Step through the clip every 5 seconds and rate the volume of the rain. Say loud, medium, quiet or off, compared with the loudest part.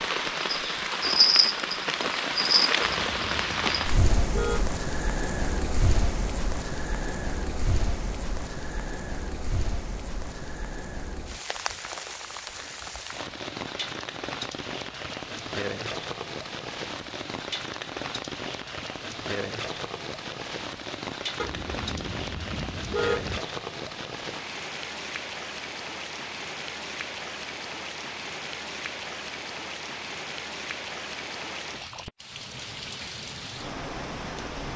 loud, medium, medium, medium, medium, medium, medium.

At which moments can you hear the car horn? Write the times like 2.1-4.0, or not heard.
2.8-4.8, 21.4-23.4.